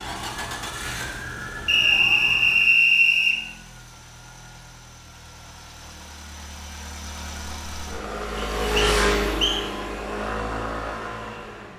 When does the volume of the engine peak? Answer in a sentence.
The loudest moment of the engine is at 9 seconds.